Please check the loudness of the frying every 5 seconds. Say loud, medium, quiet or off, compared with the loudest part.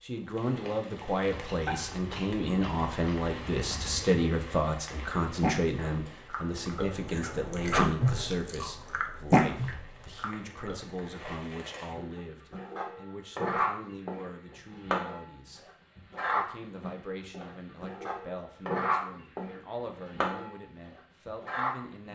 medium, quiet, loud, loud, loud.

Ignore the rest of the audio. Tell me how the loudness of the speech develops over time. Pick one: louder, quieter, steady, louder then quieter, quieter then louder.
quieter.